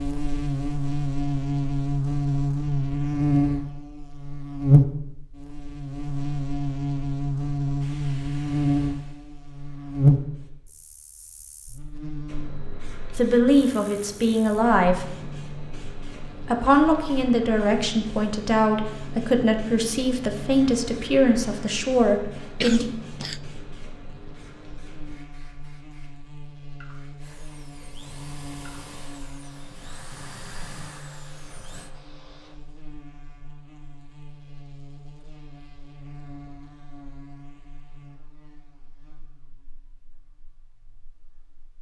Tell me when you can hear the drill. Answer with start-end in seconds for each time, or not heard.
27.2-31.9.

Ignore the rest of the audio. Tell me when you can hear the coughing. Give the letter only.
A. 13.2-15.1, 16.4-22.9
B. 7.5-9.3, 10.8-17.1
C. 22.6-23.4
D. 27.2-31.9
C.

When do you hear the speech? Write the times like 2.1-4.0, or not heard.
13.2-15.1, 16.4-22.9.